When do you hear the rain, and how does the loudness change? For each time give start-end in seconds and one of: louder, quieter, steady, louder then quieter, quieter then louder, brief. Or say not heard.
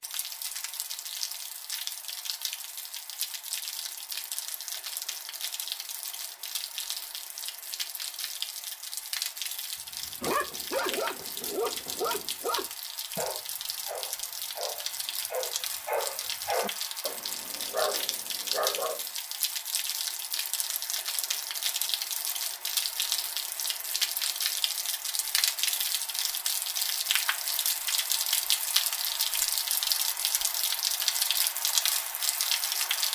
0.0-33.0 louder.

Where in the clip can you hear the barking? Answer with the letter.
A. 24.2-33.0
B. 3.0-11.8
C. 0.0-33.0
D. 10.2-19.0
D.